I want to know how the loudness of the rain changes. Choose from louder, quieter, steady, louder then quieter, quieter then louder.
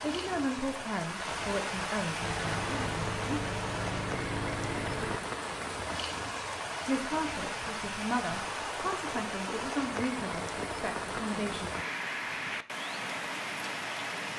steady.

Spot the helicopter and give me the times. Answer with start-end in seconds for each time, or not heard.
2.2-5.2.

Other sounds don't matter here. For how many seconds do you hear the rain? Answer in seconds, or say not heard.
14 s.